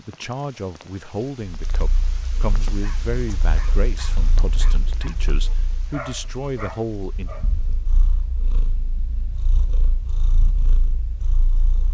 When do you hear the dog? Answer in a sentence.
You can hear the dog from 2.6 to 7.5 s.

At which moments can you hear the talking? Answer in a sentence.
You can hear the talking from 0.0 to 7.3 s.